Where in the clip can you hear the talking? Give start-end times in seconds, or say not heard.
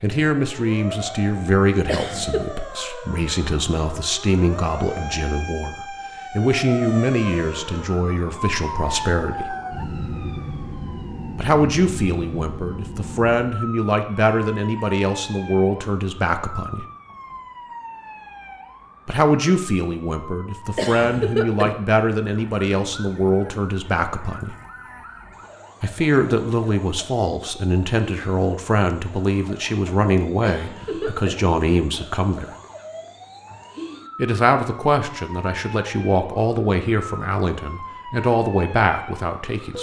0.0-9.6, 11.3-16.9, 19.1-24.6, 25.8-32.5, 34.1-39.7.